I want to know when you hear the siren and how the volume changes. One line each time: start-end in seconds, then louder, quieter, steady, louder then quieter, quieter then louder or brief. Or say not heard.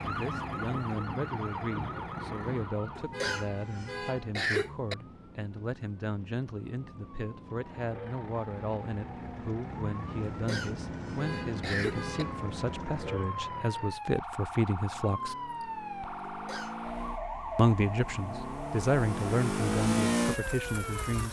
0.0-21.2 quieter then louder.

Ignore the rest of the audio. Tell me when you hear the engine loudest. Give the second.
20 s.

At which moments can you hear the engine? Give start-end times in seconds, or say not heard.
0.0-2.8, 7.5-21.2.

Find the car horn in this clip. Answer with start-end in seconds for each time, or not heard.
3.1-4.3, 11.2-12.4.